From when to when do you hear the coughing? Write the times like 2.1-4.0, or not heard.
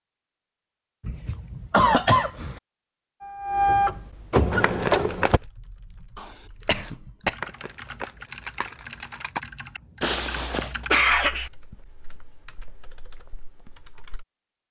1.1-2.5, 6.2-7.3, 10.0-11.5.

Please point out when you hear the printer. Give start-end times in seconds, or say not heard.
3.2-5.4.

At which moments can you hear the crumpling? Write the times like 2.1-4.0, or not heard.
4.6-5.3, 7.4-9.4.